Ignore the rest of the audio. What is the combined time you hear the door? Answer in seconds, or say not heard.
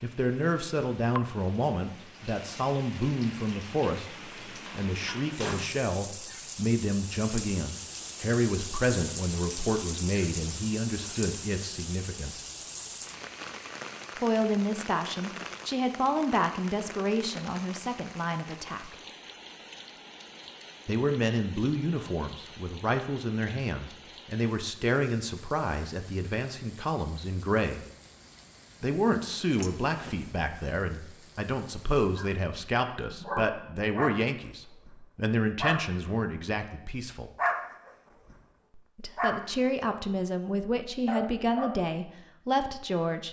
2 s.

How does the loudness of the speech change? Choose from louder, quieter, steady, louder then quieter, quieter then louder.
steady.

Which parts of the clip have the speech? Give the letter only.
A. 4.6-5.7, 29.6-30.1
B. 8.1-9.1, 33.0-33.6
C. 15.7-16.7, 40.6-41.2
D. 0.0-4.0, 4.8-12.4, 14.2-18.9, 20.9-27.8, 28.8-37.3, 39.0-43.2
D.